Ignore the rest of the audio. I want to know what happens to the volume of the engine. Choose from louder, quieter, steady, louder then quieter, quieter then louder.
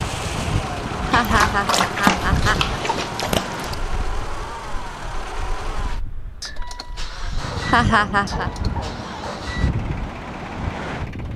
quieter.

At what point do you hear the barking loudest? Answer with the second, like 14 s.
2 s.